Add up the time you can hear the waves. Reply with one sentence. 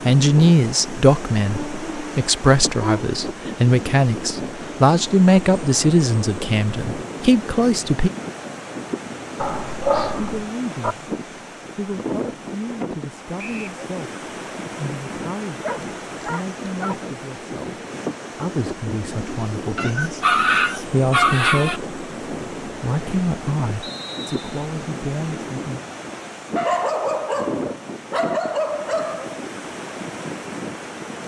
The waves can be heard for 31 seconds in total.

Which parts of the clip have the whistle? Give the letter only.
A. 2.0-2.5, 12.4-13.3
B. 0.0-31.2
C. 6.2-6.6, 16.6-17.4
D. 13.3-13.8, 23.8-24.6
D.